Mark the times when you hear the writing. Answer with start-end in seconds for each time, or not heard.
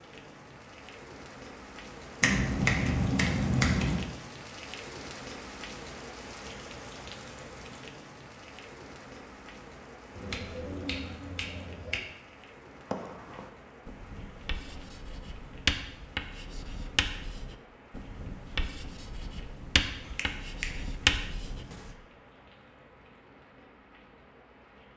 12.8-21.8.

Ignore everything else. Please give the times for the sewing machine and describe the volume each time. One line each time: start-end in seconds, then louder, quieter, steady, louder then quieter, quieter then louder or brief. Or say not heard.
not heard.